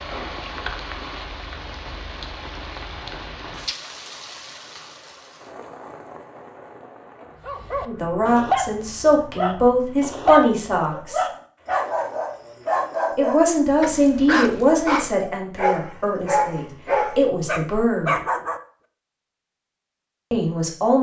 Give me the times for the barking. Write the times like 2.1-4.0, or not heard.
7.5-18.6.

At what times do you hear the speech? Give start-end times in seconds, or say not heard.
7.8-11.2, 13.2-18.1, 20.3-20.9.